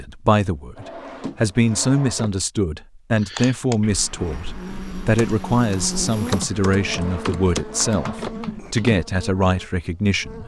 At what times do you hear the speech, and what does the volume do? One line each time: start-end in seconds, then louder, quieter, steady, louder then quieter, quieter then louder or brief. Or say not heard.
0.0-10.4 steady.